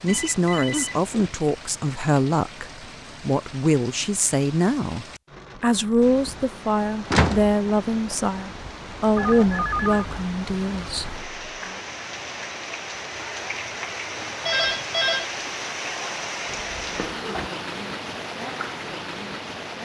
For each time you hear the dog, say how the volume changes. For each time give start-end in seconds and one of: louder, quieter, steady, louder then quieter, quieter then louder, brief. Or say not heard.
not heard.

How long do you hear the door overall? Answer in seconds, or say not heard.
2 s.